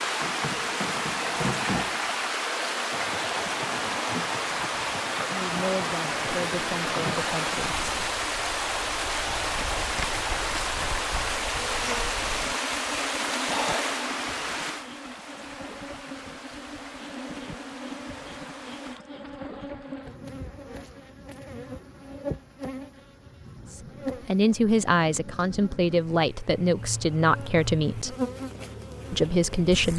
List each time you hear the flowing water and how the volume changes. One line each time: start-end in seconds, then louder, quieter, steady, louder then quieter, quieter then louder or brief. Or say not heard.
0.0-19.0 quieter.